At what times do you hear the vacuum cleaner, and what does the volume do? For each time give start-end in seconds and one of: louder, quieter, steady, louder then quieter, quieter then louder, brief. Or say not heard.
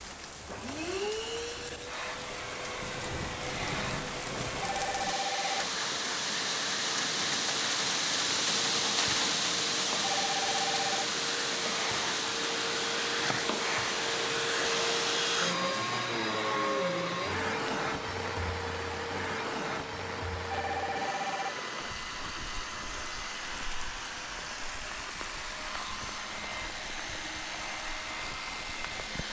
0.0-29.2 louder then quieter.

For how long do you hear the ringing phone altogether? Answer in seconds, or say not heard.
3 s.